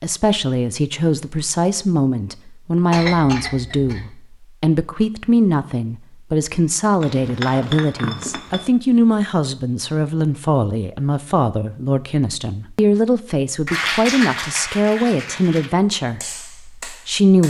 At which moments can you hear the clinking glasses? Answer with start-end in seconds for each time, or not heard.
7.0-8.7.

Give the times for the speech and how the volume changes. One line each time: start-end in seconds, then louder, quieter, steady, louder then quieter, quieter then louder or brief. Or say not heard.
0.0-17.4 steady.